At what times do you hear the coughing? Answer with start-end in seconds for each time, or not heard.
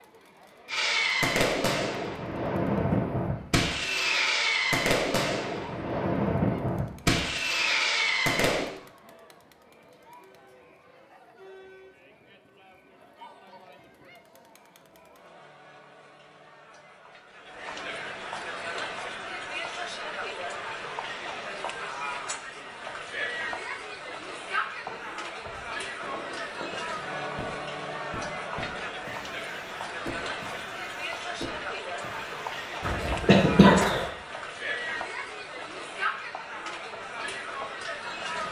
32.8-34.1.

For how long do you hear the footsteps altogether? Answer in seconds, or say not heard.
not heard.